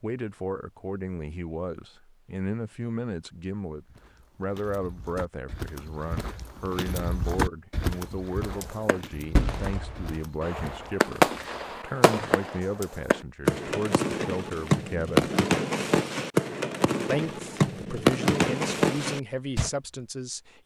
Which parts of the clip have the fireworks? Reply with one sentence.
The fireworks can be heard from 8.6 to 19.7 s.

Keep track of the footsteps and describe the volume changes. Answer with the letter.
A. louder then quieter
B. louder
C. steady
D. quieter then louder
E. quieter
A.